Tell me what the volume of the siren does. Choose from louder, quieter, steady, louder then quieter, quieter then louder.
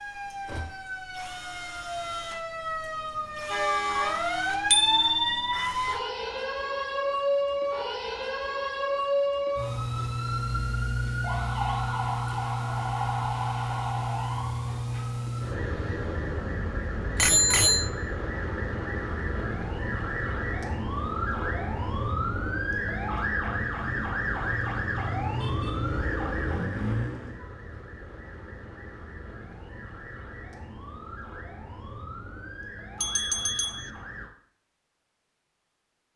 quieter.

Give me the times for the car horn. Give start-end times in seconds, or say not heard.
3.1-4.5.